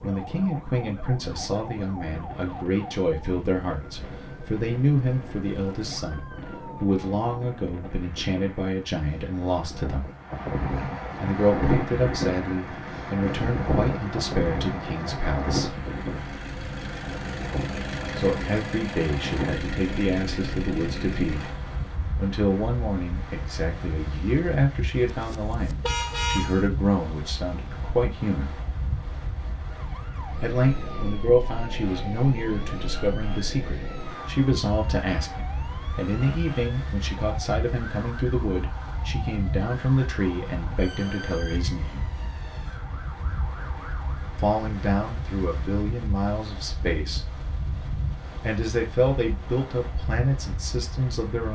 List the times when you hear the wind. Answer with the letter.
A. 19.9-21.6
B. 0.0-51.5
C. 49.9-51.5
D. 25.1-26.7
B.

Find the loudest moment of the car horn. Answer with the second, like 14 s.
26 s.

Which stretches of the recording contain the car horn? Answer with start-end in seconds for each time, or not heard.
25.1-26.7.